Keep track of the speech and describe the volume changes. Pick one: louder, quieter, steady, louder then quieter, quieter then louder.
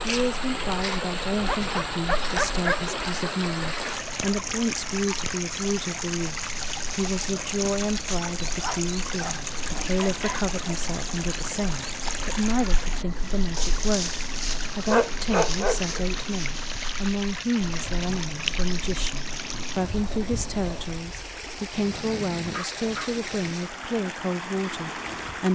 steady.